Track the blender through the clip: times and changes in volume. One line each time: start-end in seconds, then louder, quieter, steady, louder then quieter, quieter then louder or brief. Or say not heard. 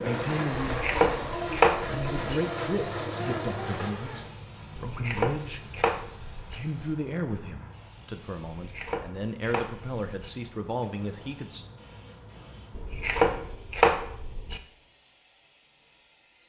0.0-4.3 steady.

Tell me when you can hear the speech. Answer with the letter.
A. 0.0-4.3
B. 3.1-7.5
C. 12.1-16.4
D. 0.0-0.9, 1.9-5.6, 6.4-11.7
D.